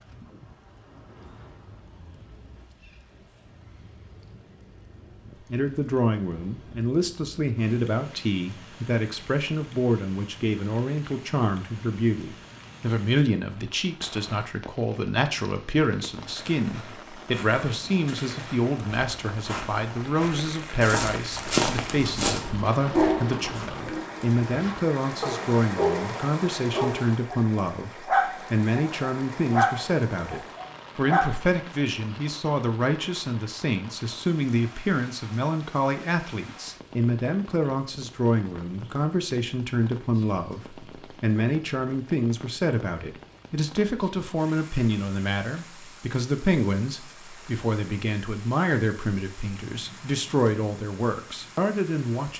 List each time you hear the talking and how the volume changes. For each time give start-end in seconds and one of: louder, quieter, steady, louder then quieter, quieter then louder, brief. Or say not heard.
5.4-52.3 steady.